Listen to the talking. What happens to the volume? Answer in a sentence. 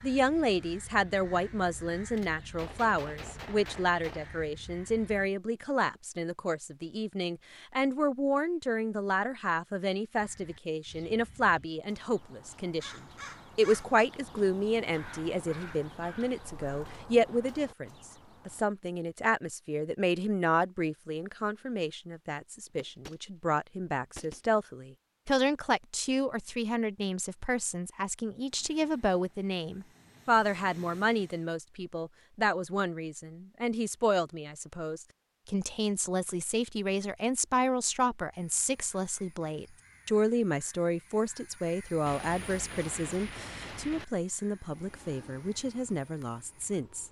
The loudness of the talking stays about the same.